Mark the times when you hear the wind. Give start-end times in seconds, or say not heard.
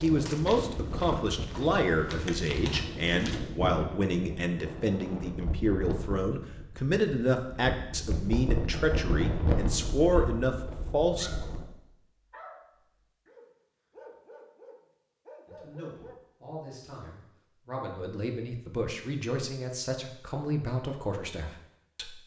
0.0-11.7.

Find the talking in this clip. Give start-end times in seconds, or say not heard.
0.0-11.3, 15.4-22.2.